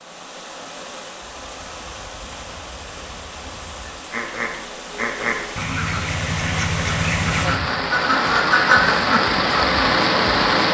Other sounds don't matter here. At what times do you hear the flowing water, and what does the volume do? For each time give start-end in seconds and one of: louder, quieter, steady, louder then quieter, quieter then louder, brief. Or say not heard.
0.0-10.7 louder.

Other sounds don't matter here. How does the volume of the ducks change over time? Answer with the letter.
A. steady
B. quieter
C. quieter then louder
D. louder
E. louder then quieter
D.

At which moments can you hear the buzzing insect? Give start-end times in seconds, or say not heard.
not heard.